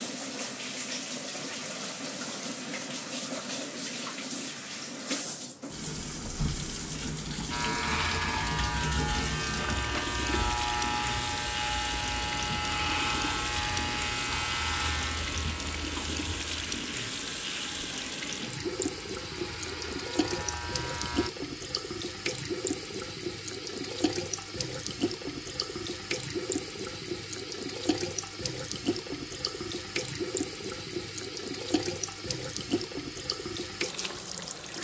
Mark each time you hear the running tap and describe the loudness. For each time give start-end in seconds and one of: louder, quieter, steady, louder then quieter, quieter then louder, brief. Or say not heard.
0.0-34.7 steady.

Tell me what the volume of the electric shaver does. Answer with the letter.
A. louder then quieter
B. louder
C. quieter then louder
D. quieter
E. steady
D.